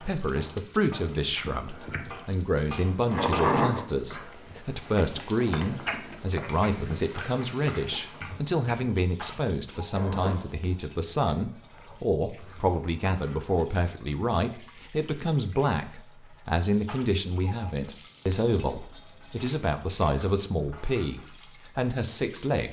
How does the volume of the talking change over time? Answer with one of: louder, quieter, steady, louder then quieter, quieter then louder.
steady.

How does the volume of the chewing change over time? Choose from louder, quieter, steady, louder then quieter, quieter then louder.
quieter.